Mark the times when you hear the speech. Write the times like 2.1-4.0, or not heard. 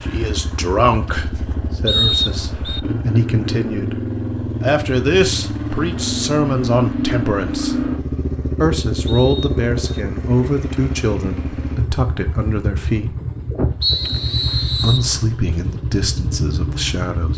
0.0-7.8, 8.6-13.2, 14.8-17.3.